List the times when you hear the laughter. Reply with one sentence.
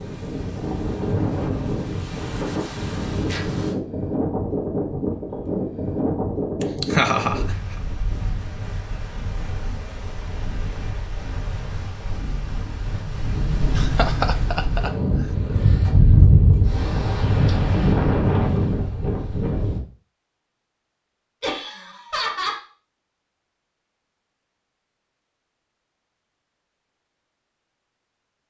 You can hear the laughter from 6.8 to 7.4 s, from 13.8 to 14.9 s and from 21.4 to 22.6 s.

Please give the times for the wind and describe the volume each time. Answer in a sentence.
You can hear the wind from 0.0 to 19.8 s, getting quieter then louder.